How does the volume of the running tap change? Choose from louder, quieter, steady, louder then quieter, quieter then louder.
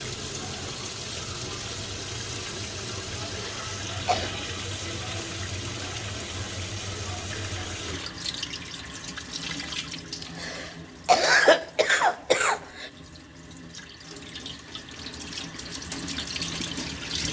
quieter then louder.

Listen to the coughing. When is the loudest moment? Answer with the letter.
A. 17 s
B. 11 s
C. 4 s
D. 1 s
B.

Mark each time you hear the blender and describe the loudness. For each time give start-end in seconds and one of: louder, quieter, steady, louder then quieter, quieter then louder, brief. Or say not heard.
not heard.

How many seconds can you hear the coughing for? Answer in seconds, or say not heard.
4 s.